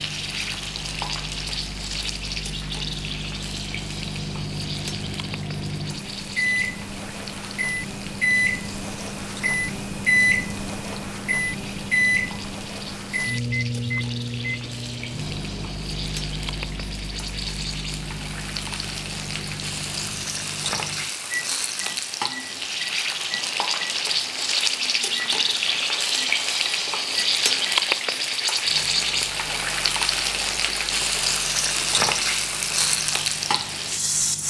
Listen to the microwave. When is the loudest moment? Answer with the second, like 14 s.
10 s.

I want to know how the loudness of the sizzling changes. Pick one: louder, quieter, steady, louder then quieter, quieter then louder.
quieter then louder.